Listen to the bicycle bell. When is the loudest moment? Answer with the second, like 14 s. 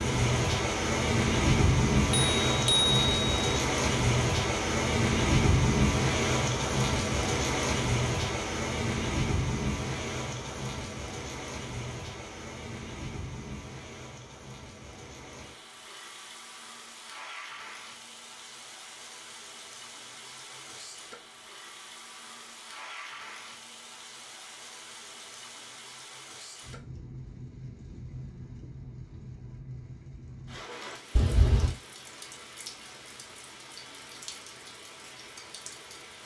3 s.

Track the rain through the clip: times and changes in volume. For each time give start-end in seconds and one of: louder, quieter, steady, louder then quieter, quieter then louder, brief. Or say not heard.
0.0-36.2 quieter.